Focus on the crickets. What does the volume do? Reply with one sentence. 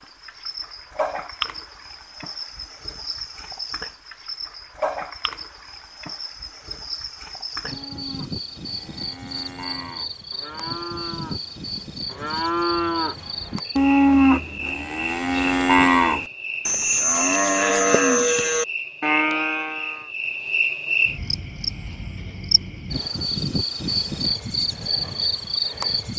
The volume of the crickets goes up.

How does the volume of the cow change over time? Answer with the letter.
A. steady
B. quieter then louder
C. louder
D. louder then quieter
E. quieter
C.